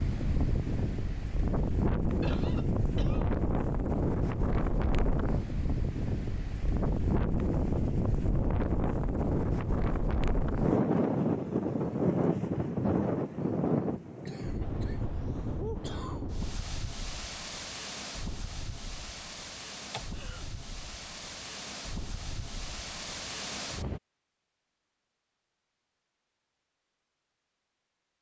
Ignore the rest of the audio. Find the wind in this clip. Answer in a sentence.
The wind can be heard from 0.0 to 24.0 s.